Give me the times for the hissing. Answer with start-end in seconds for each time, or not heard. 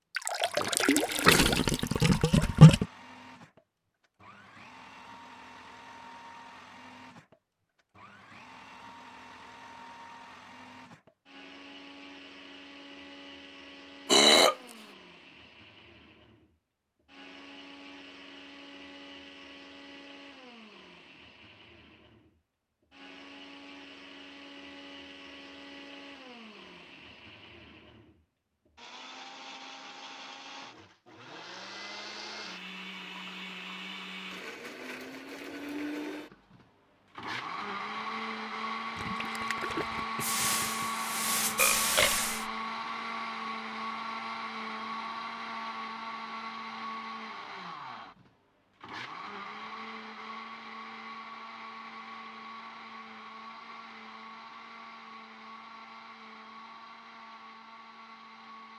40.2-42.5.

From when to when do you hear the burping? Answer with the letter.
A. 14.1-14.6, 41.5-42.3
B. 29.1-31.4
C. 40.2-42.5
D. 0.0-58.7
A.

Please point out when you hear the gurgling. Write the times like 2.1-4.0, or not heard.
0.1-2.9, 39.0-40.9.